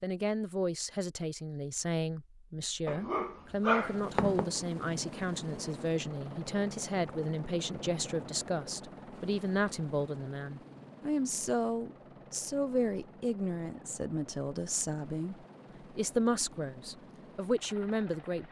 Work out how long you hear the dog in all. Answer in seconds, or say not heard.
2 s.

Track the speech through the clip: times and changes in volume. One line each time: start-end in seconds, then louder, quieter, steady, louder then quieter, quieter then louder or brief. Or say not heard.
0.0-18.4 steady.